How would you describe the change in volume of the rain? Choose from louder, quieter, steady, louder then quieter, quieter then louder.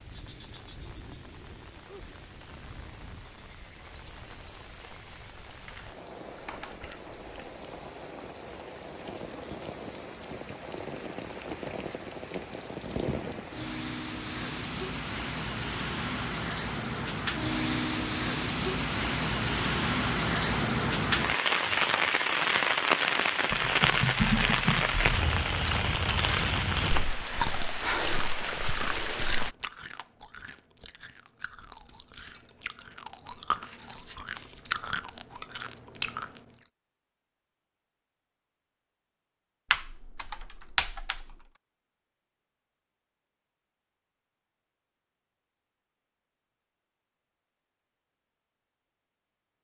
louder.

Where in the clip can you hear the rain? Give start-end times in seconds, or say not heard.
0.0-29.6.